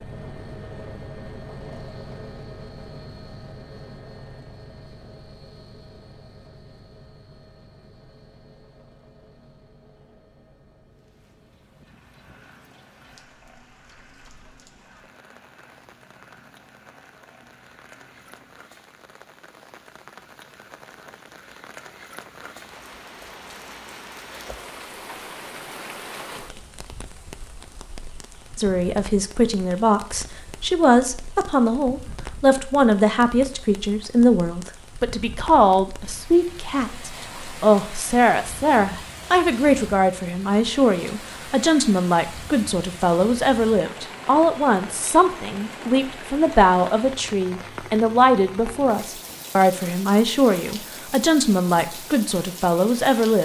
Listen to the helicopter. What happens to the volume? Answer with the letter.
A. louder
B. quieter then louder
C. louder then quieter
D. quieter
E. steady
D.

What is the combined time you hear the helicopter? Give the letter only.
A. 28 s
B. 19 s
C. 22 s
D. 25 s
B.